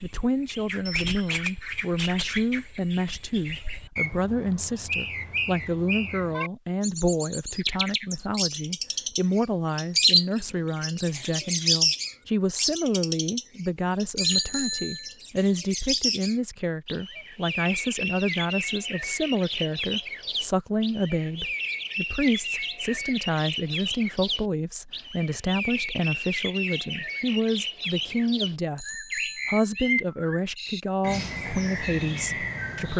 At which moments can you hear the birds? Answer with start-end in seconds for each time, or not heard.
0.0-32.9.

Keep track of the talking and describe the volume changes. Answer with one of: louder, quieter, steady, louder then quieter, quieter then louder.
steady.